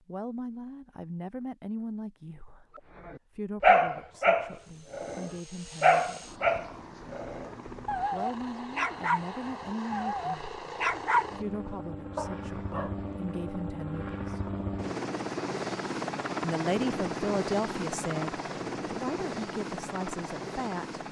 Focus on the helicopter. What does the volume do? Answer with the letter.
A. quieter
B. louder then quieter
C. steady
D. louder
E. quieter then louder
D.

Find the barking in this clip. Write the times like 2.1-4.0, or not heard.
3.0-12.9.